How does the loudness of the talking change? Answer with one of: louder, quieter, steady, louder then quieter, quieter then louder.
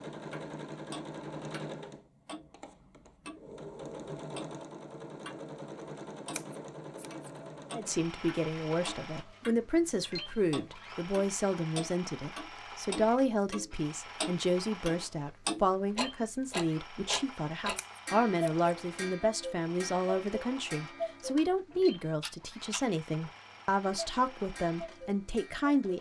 steady.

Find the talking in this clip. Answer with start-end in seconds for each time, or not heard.
7.7-25.9.